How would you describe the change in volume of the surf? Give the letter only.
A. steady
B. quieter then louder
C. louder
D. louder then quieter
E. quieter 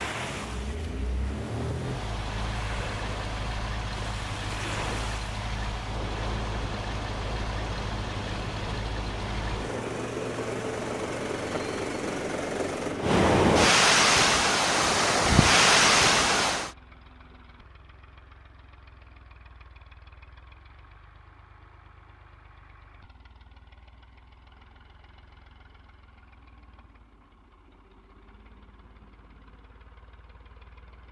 C.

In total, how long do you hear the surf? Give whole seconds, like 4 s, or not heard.
17 s.